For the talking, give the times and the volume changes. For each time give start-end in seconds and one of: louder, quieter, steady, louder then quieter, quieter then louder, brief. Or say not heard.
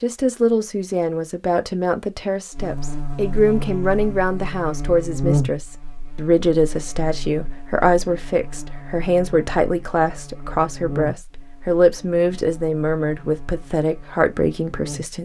0.0-15.2 steady.